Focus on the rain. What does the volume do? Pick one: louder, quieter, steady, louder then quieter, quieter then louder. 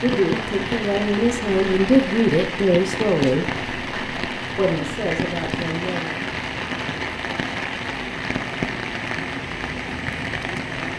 steady.